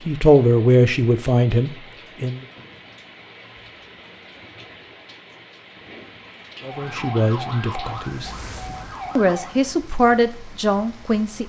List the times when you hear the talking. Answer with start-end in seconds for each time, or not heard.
0.0-2.5, 6.7-8.3, 9.2-11.4.